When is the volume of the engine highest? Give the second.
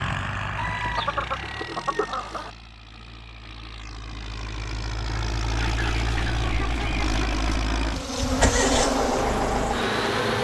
9 s.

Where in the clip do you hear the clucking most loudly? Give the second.
1 s.